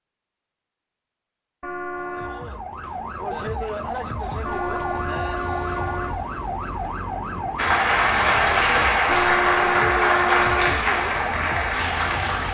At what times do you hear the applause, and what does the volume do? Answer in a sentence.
The applause can be heard from 7.5 to 12.4 s, getting quieter.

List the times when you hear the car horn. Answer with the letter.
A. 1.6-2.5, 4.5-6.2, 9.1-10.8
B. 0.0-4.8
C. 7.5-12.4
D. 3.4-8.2
A.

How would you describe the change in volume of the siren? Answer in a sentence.
The loudness of the siren stays about the same.